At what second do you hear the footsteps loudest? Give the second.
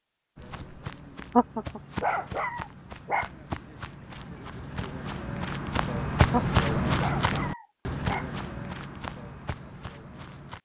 7 s.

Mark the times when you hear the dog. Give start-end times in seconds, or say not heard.
1.3-3.3, 6.3-8.2.